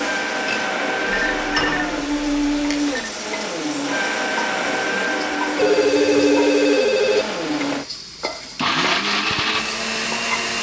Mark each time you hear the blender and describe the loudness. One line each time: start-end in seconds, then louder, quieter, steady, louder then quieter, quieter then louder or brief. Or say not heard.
0.0-10.5 steady.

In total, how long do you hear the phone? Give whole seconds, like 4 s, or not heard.
4 s.